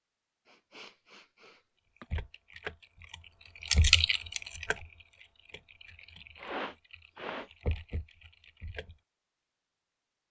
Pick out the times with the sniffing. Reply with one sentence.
You can hear the sniffing from 0.5 to 2.0 s and from 6.3 to 7.5 s.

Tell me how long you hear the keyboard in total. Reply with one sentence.
The keyboard can be heard for 7 seconds in total.